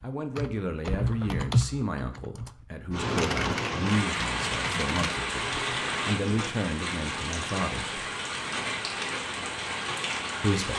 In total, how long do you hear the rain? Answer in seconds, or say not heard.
8 s.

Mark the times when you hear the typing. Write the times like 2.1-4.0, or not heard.
0.0-6.5.